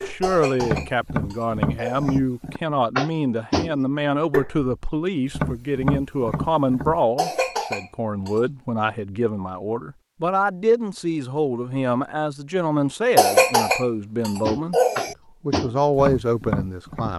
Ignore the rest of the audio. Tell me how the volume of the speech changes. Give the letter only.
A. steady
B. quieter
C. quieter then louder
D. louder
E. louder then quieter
A.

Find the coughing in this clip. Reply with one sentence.
The coughing can be heard from 0.2 to 2.2 s, from 7.2 to 8.4 s and from 13.2 to 15.2 s.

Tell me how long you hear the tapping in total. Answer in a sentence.
The tapping can be heard for 10 seconds in total.